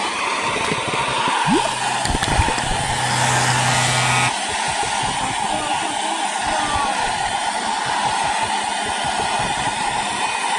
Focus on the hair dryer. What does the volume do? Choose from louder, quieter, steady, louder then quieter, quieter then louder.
steady.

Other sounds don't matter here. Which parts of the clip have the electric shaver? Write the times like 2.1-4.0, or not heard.
1.5-4.3.